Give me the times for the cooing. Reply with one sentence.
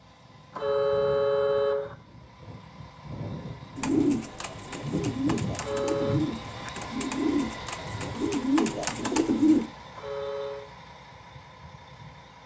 You can hear the cooing from 3.8 to 9.7 s.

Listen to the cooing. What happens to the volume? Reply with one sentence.
The loudness of the cooing goes up.